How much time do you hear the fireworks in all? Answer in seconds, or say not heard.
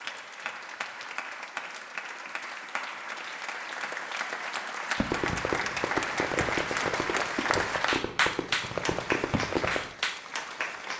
5 s.